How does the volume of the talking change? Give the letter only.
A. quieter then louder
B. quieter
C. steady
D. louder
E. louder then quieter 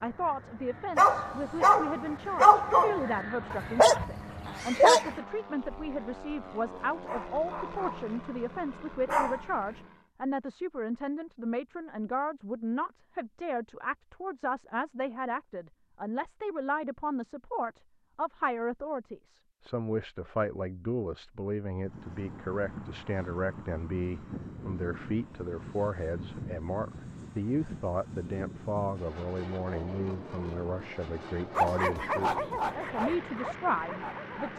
C.